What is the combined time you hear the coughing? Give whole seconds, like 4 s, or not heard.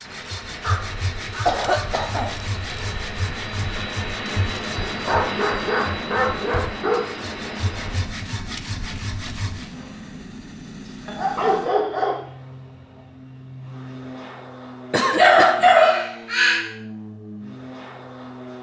2 s.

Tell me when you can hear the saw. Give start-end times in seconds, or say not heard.
0.0-9.7.